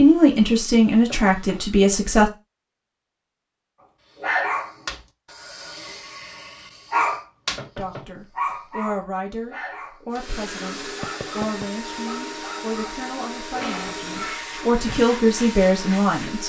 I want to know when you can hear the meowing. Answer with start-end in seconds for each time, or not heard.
13.6-14.4.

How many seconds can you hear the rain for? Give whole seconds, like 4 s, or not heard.
not heard.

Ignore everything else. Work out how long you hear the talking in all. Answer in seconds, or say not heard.
11 s.